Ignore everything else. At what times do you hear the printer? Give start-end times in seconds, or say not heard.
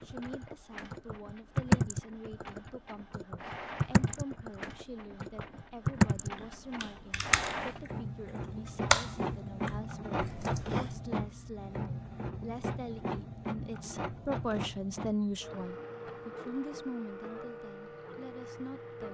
0.0-19.0.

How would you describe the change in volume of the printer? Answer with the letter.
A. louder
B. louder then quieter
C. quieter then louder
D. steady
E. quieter
B.